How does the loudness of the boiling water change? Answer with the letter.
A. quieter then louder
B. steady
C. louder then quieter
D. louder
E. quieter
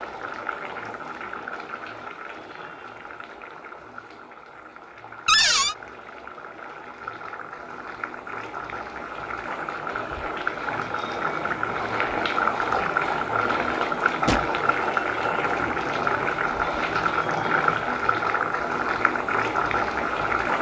D.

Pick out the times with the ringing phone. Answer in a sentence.
You can't hear the ringing phone here.